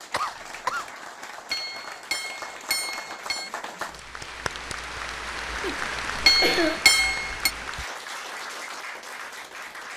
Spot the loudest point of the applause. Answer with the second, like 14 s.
6 s.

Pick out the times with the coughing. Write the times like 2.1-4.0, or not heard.
0.1-0.9, 5.6-6.8.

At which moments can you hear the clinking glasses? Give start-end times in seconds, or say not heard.
1.5-3.5, 6.2-7.5.